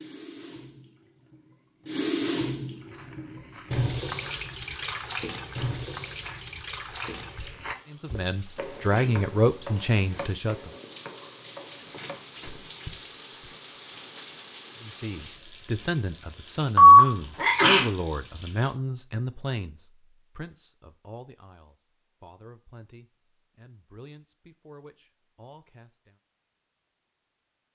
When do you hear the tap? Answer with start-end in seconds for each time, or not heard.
0.0-18.8.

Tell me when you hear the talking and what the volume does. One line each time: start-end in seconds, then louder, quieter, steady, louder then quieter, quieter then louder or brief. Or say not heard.
7.9-10.7 brief
14.8-26.1 quieter.